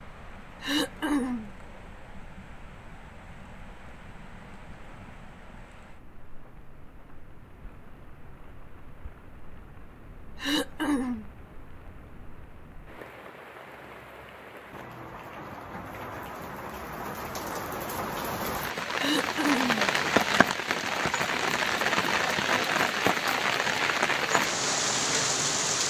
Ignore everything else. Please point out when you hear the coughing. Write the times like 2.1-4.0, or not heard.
0.6-1.5, 10.4-11.2, 18.9-19.9.